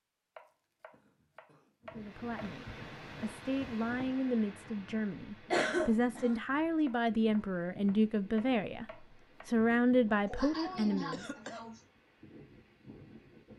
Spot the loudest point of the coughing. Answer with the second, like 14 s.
6 s.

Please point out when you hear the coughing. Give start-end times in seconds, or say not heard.
0.9-1.6, 2.4-2.8, 5.5-6.3, 10.2-11.8.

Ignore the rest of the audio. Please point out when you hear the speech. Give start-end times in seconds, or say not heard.
1.9-11.2.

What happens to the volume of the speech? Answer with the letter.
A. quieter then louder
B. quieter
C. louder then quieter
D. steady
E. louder
E.